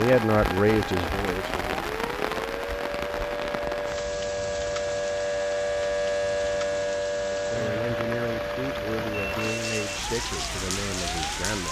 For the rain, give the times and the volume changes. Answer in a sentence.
The rain can be heard from 0.0 to 11.6 s, getting quieter then louder.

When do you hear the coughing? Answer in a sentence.
The coughing can't be heard in this clip.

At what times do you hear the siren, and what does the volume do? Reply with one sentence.
You can hear the siren from 0.1 to 11.6 s, getting louder then quieter.